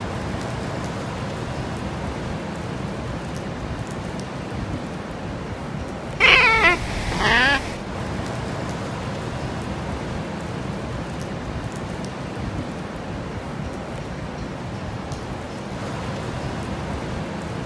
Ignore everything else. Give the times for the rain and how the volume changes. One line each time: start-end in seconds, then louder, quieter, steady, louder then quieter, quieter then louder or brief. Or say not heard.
0.0-17.6 steady.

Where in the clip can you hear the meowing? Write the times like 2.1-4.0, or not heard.
6.2-7.8.